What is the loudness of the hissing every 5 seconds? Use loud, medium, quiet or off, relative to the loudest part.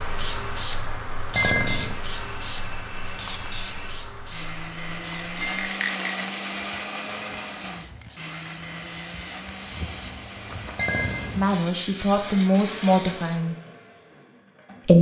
loud, medium, loud.